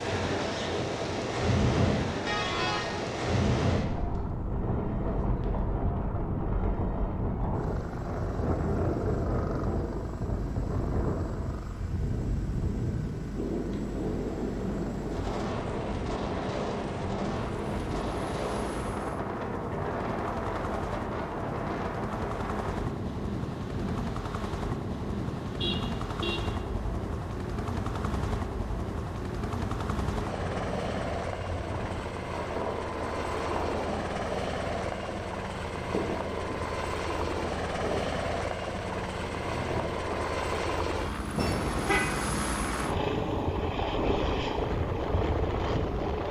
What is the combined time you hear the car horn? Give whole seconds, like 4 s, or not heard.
2 s.